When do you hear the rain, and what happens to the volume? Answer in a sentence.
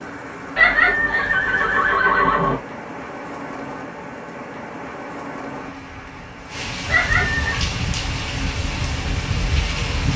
You can hear the rain from 0.0 to 10.1 s, getting louder.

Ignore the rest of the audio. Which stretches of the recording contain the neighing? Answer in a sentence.
You can hear the neighing from 0.6 to 2.5 s and from 6.8 to 7.7 s.